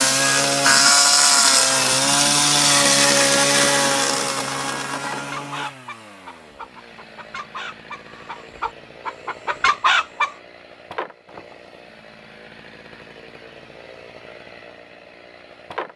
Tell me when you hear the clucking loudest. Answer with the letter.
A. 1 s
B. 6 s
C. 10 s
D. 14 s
C.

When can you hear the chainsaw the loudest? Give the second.
1 s.